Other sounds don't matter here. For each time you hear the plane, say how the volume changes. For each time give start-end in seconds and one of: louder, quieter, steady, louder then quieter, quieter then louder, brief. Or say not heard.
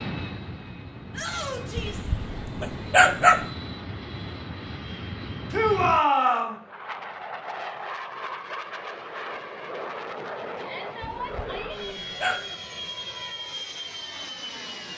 0.0-14.9 steady.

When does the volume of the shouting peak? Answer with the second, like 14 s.
6 s.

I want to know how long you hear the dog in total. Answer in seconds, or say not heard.
3 s.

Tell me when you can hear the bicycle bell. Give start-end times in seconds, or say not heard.
not heard.